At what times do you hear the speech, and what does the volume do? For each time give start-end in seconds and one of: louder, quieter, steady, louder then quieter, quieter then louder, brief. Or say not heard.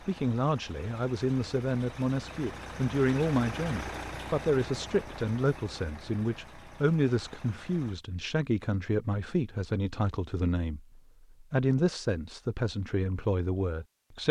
0.0-14.2 steady.